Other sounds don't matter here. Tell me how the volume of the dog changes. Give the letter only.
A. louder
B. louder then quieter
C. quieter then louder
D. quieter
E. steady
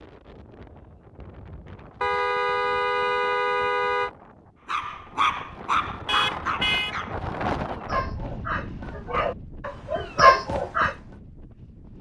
C.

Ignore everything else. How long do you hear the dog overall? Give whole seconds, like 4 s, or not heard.
6 s.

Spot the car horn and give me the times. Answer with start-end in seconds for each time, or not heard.
2.0-4.1, 6.0-7.0.